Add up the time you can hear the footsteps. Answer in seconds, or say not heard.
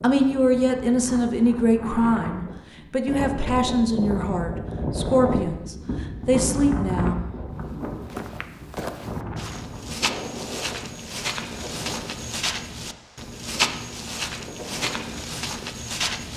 9 s.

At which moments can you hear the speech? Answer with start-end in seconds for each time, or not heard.
0.0-7.2.